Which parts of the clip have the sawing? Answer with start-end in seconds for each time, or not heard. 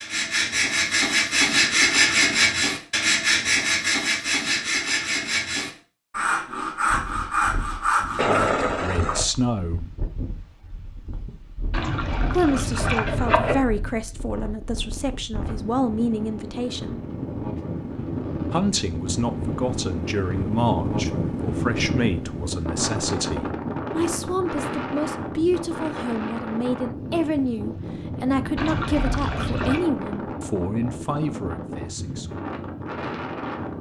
0.0-8.5.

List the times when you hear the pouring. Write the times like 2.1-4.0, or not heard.
8.2-9.2, 11.7-13.6, 28.6-29.9.